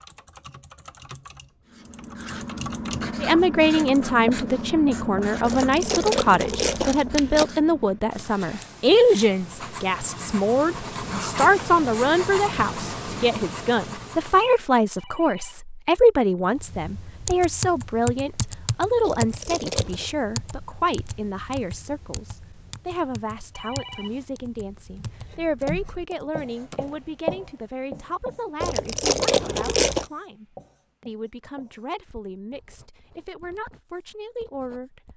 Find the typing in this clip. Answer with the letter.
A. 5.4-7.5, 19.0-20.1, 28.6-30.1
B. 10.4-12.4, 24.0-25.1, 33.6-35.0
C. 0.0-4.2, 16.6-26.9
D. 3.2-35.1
C.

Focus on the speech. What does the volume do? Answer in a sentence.
The volume of the speech goes down.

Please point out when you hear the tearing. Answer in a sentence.
You can hear the tearing from 5.4 to 7.5 s, from 19.0 to 20.1 s and from 28.6 to 30.1 s.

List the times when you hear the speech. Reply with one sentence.
The speech can be heard from 3.2 to 35.1 s.